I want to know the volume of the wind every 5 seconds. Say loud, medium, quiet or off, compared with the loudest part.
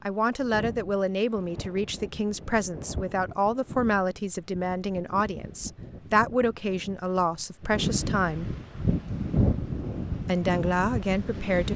medium, loud, loud.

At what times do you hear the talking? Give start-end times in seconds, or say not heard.
0.0-8.5, 10.2-11.7.